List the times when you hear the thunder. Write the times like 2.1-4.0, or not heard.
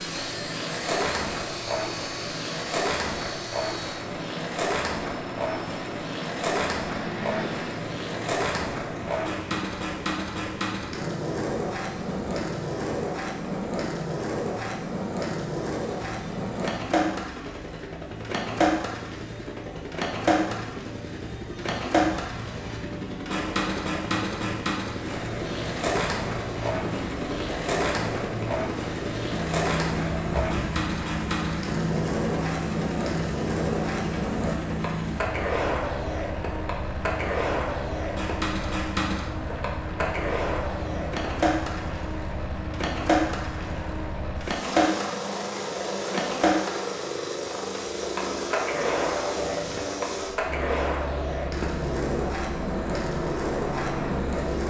not heard.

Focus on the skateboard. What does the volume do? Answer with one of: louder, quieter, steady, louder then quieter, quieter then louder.
steady.